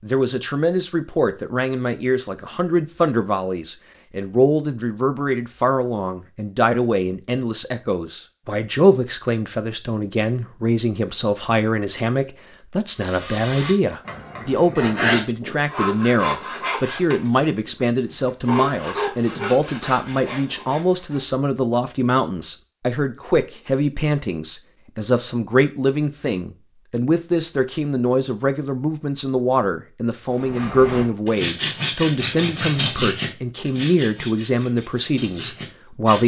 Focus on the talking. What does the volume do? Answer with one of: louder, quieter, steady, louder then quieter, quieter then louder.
steady.